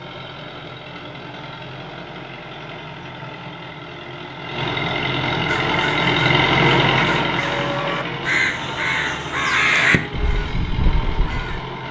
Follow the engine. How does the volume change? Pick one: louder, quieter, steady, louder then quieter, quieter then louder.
louder then quieter.